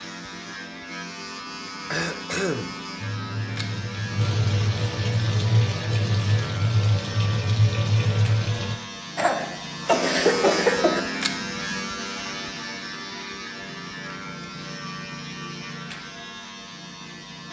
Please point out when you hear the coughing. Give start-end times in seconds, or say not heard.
1.9-2.7, 9.2-11.0.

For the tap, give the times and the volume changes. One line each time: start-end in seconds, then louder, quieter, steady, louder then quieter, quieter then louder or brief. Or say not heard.
3.0-8.8 louder.